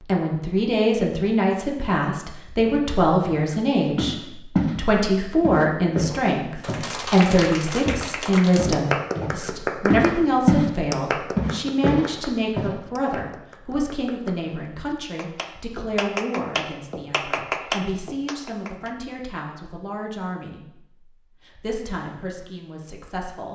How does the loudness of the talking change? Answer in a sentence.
The volume of the talking goes down.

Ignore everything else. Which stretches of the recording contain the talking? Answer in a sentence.
You can hear the talking from 0.0 to 23.5 s.